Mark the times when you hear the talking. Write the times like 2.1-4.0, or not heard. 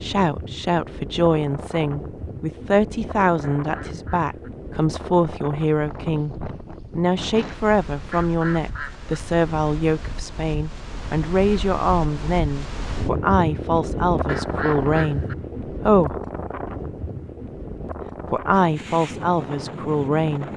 0.0-6.3, 7.0-16.1, 18.3-20.5.